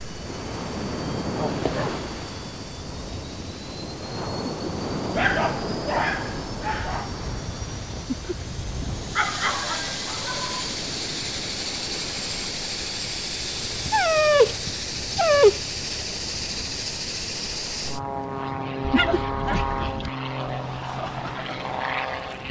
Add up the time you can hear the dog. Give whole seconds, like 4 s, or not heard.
7 s.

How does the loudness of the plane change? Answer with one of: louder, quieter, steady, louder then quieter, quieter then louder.
louder.